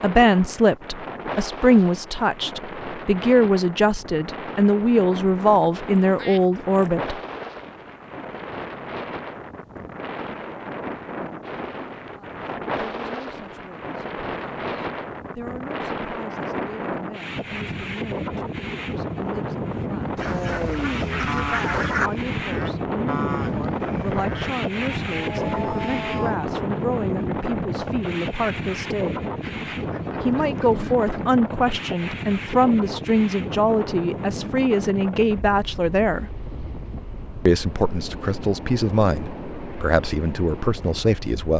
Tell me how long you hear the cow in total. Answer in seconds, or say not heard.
6 s.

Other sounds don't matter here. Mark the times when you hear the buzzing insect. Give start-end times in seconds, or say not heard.
not heard.